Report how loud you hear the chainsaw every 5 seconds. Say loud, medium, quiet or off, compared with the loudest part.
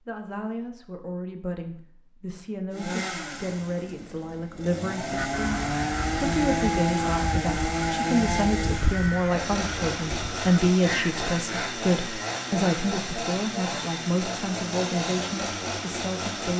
medium, loud, loud, loud.